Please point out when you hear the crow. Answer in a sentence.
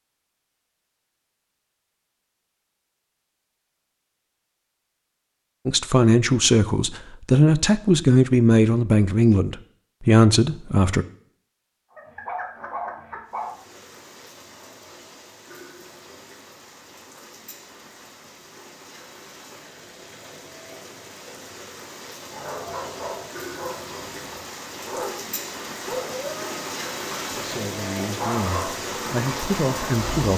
The crow can't be heard in this clip.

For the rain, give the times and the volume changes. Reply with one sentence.
You can hear the rain from 13.2 to 30.3 s, getting louder.